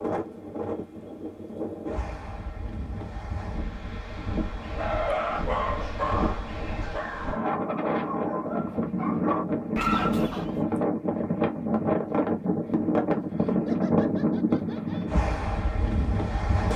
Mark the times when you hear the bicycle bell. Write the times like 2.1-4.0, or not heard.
not heard.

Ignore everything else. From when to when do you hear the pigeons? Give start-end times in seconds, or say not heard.
not heard.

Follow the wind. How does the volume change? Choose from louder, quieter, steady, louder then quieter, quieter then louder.
louder.